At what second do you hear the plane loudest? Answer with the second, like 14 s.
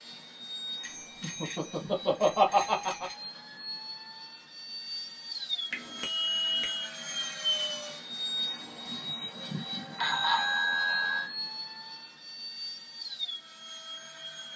8 s.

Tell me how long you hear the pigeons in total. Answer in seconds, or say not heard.
not heard.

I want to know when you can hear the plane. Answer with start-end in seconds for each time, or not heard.
0.0-14.5.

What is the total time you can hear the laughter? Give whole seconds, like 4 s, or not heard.
2 s.